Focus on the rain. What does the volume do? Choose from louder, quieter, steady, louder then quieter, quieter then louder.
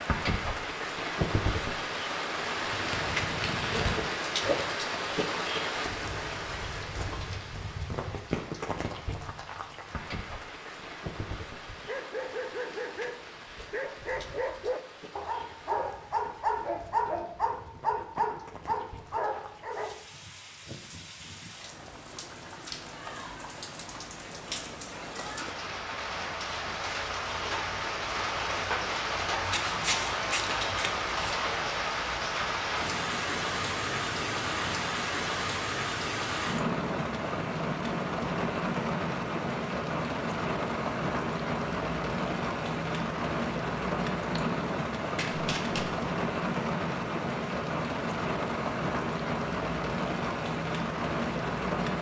quieter then louder.